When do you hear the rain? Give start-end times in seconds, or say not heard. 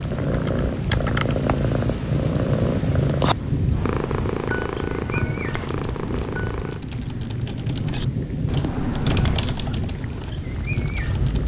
0.0-11.4.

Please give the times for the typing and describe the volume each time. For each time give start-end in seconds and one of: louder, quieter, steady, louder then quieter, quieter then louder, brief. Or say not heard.
0.2-1.4 brief
5.5-11.4 louder then quieter.